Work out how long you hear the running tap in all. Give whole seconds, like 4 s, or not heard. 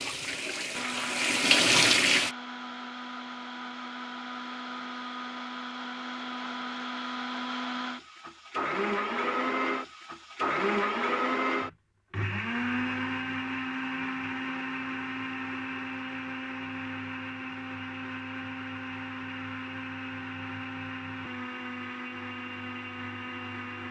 2 s.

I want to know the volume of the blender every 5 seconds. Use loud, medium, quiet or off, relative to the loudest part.
medium, loud, loud, medium, medium.